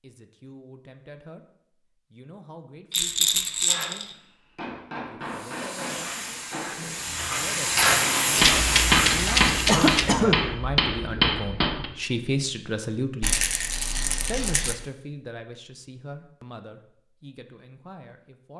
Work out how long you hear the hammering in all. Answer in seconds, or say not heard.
9 s.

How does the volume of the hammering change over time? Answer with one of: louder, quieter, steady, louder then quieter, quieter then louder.
louder.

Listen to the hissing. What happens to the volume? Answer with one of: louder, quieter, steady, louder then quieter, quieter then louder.
louder.